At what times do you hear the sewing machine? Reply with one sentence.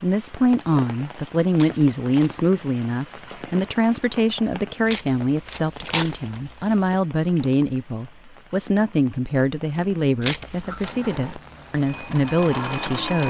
The sewing machine can be heard from 10.5 to 13.2 s.